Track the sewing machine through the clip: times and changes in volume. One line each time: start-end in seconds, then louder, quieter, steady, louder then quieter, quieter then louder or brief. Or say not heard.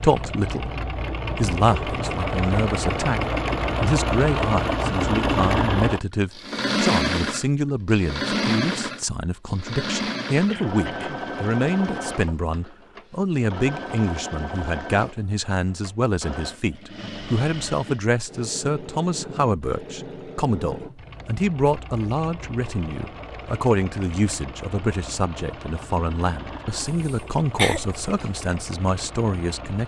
0.0-29.8 quieter.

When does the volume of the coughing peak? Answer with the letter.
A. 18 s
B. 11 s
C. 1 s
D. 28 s
D.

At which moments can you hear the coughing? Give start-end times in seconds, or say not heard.
10.4-11.2, 27.1-28.2.